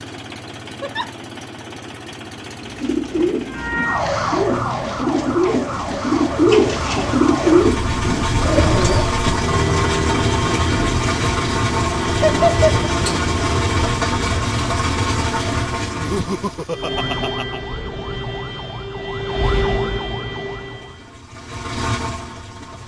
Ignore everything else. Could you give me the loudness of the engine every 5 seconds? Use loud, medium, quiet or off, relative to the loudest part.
quiet, loud, loud, loud, medium.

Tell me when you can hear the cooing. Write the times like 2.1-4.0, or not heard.
2.6-9.2.